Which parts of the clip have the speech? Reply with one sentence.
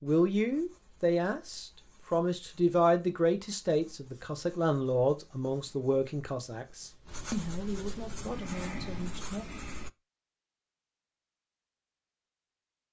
You can hear the speech from 0.0 to 9.4 s.